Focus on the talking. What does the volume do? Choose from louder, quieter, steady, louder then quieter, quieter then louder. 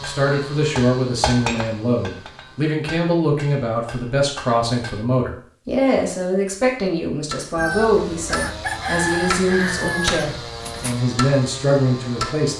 steady.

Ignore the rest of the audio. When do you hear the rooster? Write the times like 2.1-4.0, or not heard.
7.5-11.0.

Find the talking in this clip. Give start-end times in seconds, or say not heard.
0.0-12.5.